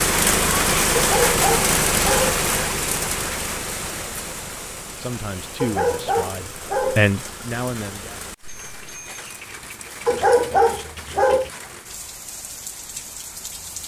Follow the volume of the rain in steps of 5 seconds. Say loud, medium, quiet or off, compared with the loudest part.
loud, quiet, quiet.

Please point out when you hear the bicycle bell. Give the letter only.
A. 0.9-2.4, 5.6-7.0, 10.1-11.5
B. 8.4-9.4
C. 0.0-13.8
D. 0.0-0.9
B.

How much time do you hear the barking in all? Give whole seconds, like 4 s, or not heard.
4 s.